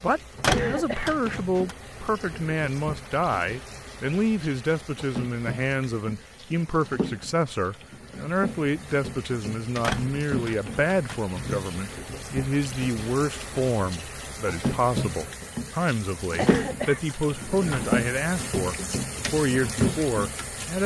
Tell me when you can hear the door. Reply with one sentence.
The door can be heard from 0.4 to 1.8 s, from 9.8 to 11.2 s and from 16.4 to 18.1 s.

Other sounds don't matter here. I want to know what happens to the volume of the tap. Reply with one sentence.
The volume of the tap goes up.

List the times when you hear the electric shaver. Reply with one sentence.
You can't hear the electric shaver here.